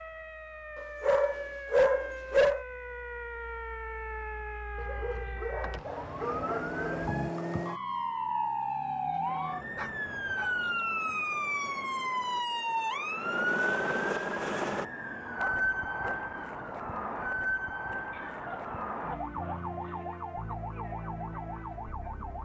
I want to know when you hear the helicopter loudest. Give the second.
14 s.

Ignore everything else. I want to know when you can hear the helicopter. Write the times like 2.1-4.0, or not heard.
9.2-14.8.